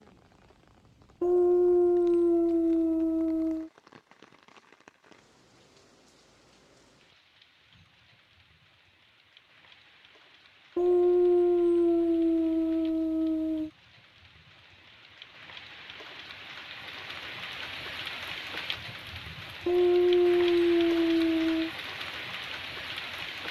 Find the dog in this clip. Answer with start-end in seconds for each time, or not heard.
1.2-3.7, 10.8-13.7, 19.6-21.7.